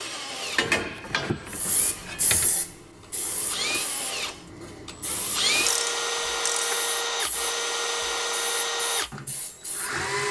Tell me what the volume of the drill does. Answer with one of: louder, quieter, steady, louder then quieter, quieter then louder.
louder.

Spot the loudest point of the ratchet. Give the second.
1 s.